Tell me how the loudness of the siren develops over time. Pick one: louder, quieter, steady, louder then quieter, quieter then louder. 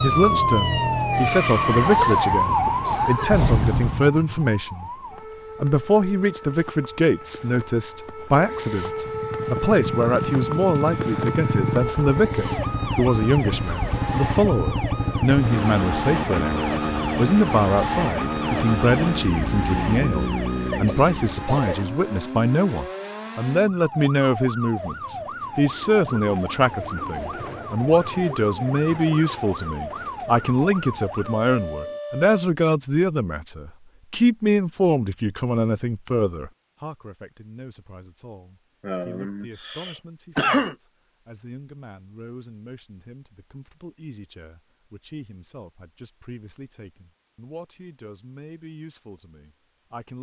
quieter.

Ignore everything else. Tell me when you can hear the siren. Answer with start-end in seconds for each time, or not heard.
0.0-32.4.